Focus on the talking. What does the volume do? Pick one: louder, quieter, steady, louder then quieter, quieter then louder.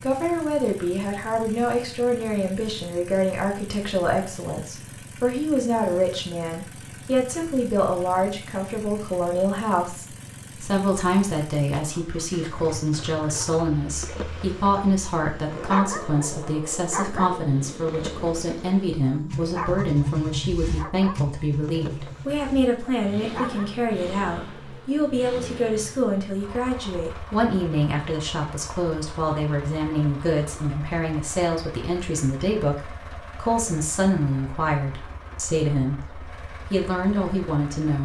steady.